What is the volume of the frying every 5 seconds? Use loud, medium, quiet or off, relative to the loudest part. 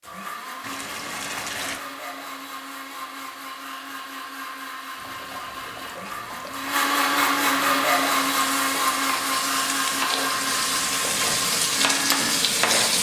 off, medium, loud.